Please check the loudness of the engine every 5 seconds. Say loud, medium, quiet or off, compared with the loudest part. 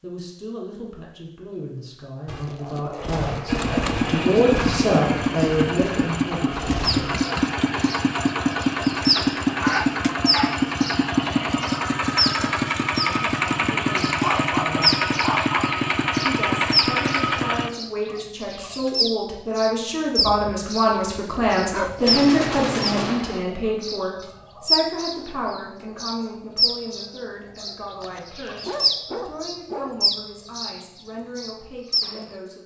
loud, loud, loud, loud, off, off, off.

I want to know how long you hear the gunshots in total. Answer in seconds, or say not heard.
6 s.